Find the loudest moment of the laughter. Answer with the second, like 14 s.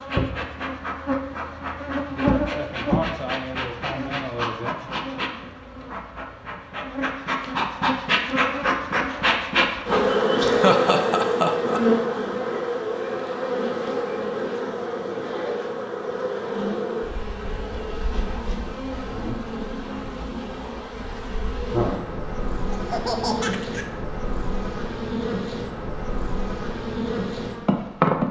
11 s.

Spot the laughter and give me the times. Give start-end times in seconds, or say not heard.
10.4-11.8, 22.7-23.9.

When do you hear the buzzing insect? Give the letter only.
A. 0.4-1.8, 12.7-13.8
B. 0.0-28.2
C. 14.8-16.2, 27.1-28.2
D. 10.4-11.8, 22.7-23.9
B.